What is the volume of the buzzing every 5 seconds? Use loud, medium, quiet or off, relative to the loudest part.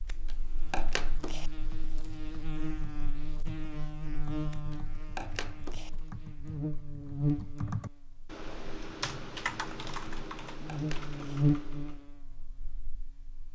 medium, loud, loud.